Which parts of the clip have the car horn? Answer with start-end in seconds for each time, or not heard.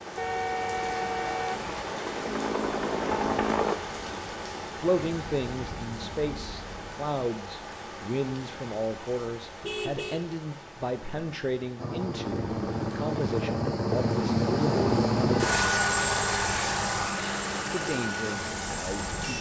0.1-1.9, 9.6-10.2, 15.2-17.1.